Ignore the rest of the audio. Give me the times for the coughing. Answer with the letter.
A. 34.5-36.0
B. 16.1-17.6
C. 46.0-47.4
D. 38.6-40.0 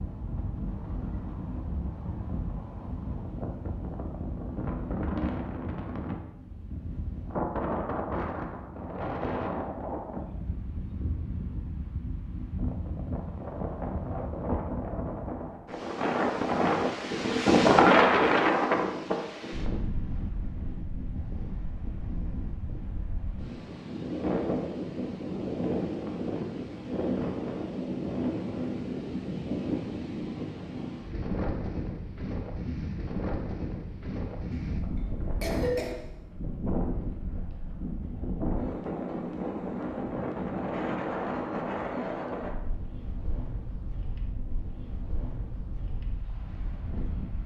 A.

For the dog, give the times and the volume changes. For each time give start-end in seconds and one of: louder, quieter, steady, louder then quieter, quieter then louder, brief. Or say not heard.
not heard.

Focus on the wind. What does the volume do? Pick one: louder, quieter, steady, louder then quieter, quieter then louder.
louder then quieter.